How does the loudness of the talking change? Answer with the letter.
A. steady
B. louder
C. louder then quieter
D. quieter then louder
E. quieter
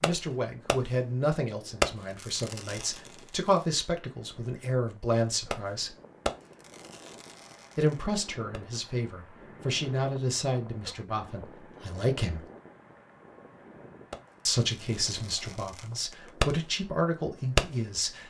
A.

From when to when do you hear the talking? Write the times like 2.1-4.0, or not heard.
0.0-6.0, 7.8-12.4, 14.4-18.2.